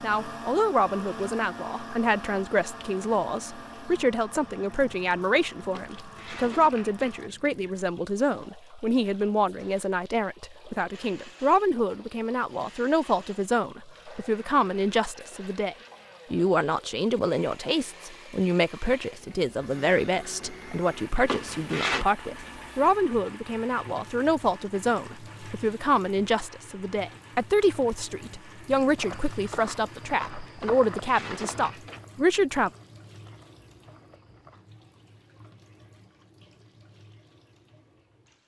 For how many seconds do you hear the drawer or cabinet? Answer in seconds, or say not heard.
4 s.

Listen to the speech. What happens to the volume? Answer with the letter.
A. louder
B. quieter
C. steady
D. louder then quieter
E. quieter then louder
C.